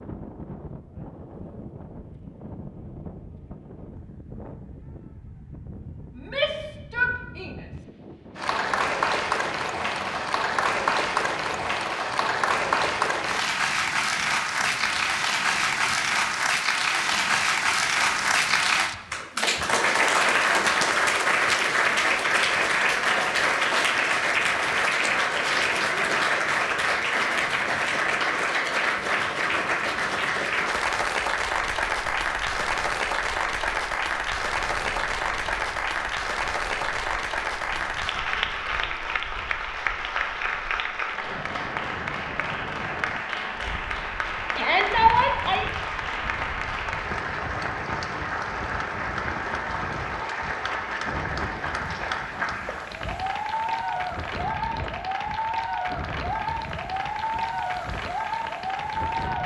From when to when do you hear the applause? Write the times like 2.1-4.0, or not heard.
8.3-59.4.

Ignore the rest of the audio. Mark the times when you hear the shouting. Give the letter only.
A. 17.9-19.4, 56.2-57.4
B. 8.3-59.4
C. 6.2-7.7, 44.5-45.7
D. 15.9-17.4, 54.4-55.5
C.